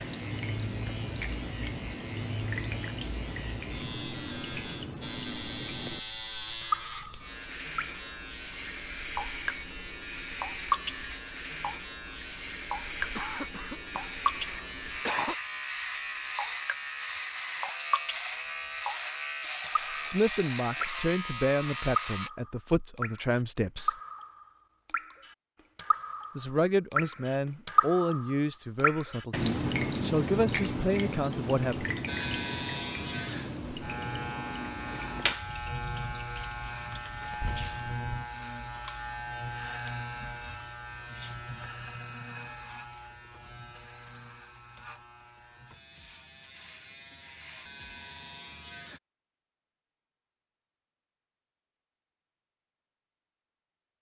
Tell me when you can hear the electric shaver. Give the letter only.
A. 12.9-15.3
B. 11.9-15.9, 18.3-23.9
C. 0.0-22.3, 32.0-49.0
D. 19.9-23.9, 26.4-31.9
C.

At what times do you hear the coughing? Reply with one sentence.
You can hear the coughing from 12.9 to 15.3 s.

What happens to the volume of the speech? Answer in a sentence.
The volume of the speech stays about the same.